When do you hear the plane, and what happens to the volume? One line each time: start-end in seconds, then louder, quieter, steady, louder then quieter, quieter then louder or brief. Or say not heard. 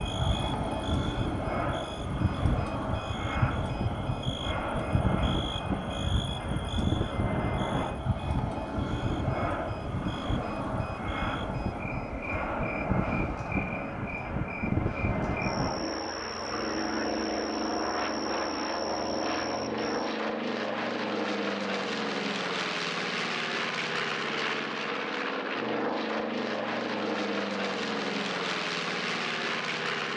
0.0-30.1 steady.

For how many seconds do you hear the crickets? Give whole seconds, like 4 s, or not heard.
20 s.